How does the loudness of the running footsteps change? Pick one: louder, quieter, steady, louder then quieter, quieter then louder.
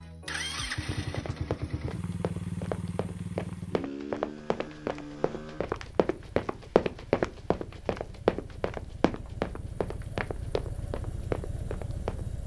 louder then quieter.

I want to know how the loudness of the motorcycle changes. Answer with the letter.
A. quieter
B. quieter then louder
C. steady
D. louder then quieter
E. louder
B.